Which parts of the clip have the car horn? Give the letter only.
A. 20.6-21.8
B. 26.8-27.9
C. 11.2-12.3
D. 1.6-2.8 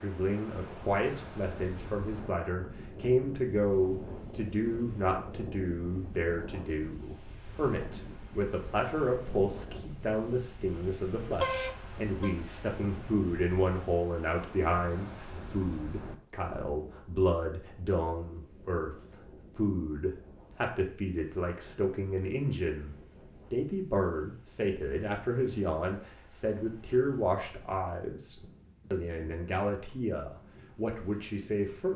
C.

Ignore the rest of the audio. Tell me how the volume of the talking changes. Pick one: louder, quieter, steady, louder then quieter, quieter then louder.
steady.